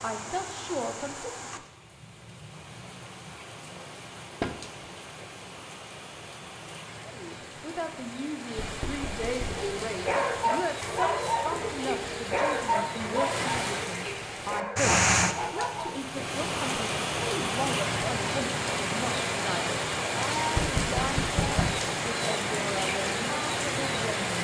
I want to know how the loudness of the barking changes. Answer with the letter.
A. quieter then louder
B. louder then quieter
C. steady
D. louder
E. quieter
E.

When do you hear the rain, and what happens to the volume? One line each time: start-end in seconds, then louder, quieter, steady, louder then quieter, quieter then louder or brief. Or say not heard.
0.0-24.3 louder.